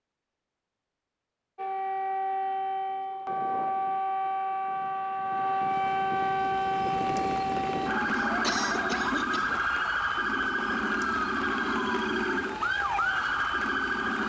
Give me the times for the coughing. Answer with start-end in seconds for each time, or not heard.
8.2-9.7.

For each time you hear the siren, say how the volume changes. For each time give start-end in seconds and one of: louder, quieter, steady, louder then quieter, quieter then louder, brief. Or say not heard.
1.6-14.2 steady.